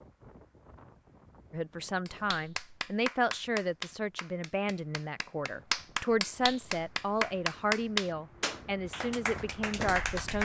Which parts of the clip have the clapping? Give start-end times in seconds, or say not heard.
2.0-10.3.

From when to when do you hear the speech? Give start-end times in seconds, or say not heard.
1.5-10.3.